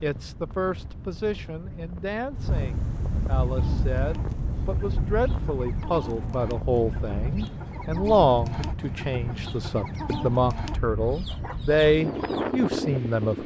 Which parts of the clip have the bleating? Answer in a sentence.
The bleating can't be heard in this clip.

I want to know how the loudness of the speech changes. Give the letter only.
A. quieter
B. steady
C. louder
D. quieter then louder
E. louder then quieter
C.